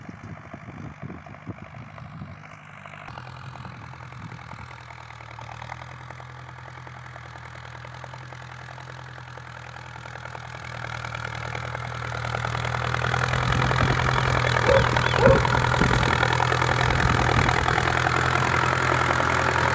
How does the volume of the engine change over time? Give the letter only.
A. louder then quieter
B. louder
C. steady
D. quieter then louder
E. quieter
B.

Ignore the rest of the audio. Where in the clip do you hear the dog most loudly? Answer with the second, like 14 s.
15 s.